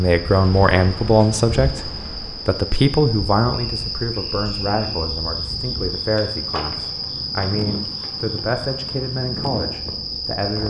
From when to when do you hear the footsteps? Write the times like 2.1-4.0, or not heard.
not heard.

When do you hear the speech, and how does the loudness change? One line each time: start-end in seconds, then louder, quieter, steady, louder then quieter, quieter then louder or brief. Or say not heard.
0.0-10.6 quieter.